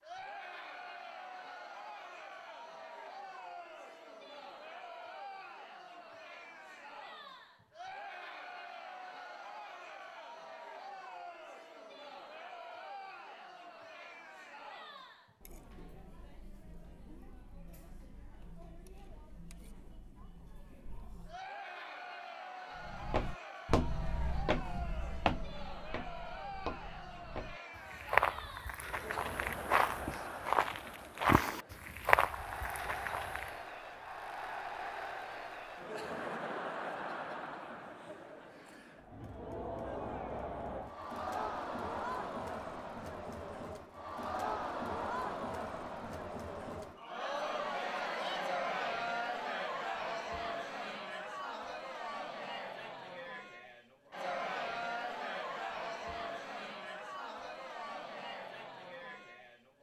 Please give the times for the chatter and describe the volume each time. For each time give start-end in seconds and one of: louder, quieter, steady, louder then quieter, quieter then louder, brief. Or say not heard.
0.0-59.7 louder.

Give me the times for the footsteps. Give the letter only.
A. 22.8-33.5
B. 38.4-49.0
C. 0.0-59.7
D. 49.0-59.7
A.